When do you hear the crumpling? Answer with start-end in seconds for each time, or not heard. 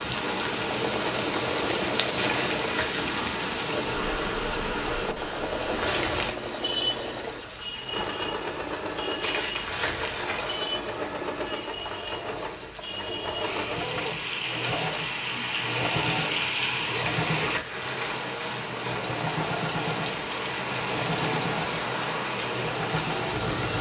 2.1-3.0, 9.2-10.8, 16.9-18.9.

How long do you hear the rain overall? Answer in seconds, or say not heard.
24 s.